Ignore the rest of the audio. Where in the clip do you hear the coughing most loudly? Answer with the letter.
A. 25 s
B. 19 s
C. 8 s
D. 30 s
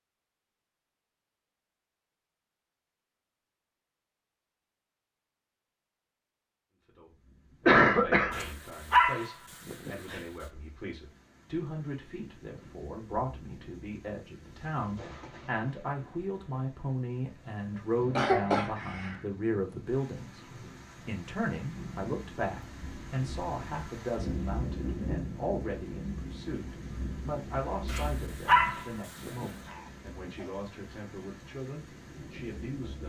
C.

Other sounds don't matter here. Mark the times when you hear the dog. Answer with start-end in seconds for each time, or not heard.
8.3-10.2, 27.9-29.5.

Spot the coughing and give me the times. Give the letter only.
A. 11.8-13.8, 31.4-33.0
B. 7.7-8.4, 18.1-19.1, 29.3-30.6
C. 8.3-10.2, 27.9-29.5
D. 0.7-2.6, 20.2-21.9
B.